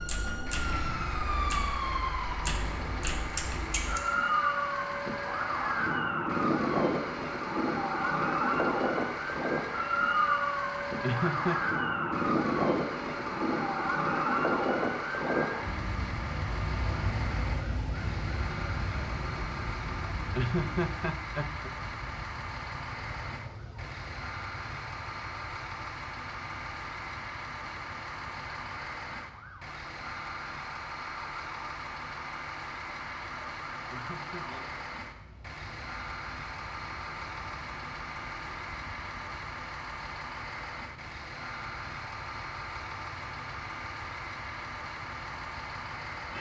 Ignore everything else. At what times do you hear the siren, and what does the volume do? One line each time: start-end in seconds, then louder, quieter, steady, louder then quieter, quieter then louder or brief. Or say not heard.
0.0-46.3 quieter.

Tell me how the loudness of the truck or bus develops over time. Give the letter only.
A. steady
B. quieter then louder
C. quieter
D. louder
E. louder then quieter
A.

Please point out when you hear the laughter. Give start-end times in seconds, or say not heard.
11.0-11.6, 20.4-21.7, 33.9-34.5.